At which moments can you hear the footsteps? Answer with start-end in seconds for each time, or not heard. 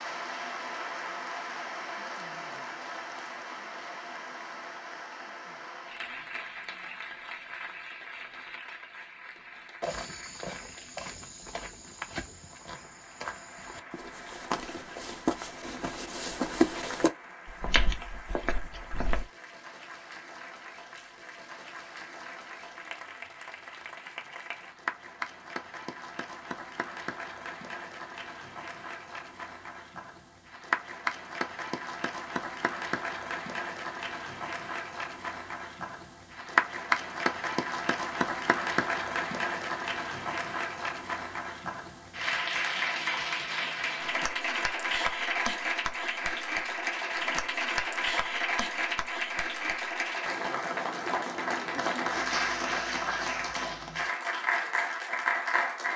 9.8-19.2.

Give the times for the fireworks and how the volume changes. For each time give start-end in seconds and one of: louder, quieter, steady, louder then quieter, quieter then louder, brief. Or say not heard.
not heard.